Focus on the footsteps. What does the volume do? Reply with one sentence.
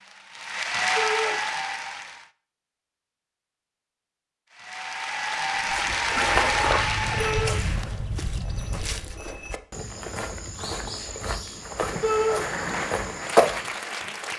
The volume of the footsteps goes down, then up.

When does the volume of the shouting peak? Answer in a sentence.
The loudest moment of the shouting is at 12 seconds.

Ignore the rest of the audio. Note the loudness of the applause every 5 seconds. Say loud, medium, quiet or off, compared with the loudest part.
loud, loud, medium.